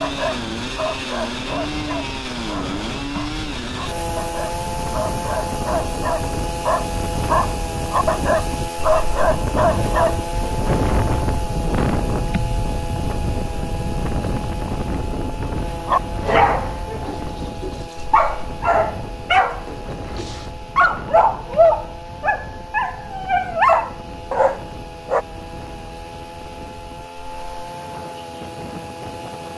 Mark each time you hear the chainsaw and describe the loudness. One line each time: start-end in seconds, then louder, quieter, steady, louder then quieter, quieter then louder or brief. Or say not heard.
0.0-29.5 quieter.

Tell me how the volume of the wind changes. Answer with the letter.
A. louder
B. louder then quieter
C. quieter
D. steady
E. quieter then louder
B.